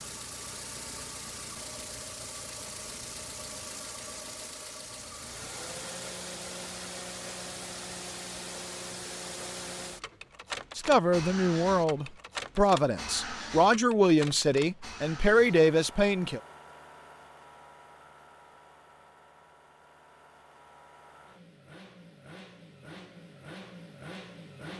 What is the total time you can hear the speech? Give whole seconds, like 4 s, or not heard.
6 s.